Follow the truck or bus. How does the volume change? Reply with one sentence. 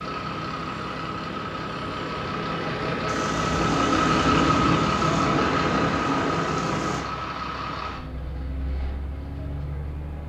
The loudness of the truck or bus goes up, then down.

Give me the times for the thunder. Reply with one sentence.
The thunder can be heard from 3.0 to 7.0 s.